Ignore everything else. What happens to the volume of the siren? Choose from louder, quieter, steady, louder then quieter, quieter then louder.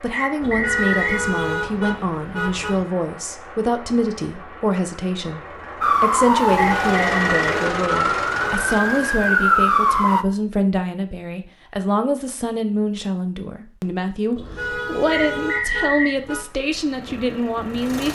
quieter then louder.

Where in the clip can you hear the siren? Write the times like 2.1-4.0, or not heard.
5.8-10.2.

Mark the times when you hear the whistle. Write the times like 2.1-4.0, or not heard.
0.1-1.2, 6.5-7.5, 15.1-16.1.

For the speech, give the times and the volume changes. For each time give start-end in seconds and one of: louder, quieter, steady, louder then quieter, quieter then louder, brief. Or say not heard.
0.0-18.1 steady.